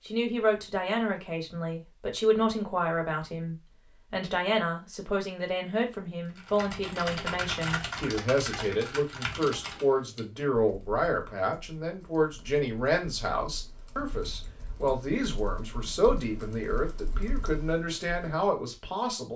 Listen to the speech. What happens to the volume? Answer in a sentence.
The volume of the speech stays about the same.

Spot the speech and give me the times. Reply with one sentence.
You can hear the speech from 0.1 to 19.3 s.